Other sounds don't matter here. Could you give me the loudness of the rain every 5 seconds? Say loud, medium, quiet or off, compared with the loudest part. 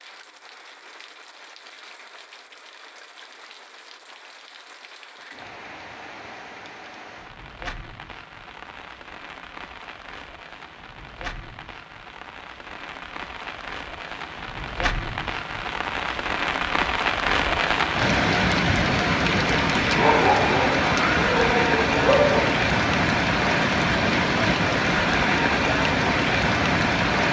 quiet, quiet, quiet, loud, loud, loud.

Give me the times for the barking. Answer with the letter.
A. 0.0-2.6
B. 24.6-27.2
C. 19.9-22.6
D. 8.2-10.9
C.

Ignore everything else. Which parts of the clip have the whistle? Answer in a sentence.
The whistle can't be heard in this clip.